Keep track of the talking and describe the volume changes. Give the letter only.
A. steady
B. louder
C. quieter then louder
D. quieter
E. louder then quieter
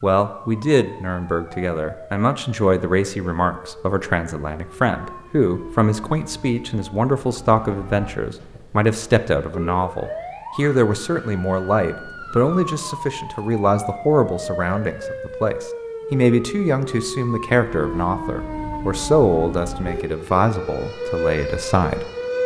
A.